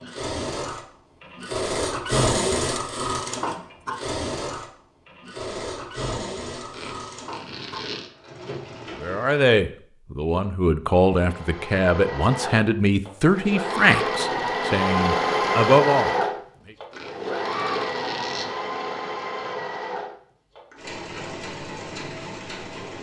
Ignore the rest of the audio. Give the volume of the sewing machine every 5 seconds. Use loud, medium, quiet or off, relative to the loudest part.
loud, medium, loud, loud, medium.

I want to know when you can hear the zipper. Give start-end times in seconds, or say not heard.
6.7-8.1, 16.9-18.4.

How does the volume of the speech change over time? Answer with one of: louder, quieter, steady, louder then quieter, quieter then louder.
steady.